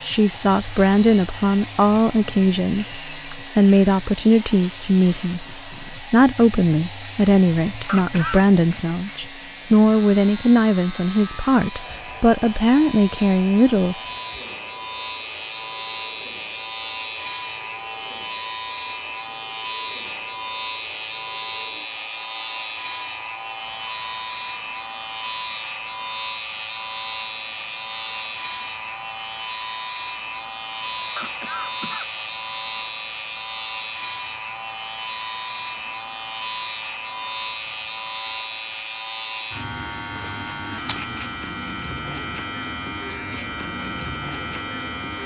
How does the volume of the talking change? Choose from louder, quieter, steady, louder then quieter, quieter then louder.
steady.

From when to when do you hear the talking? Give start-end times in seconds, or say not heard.
0.0-13.9.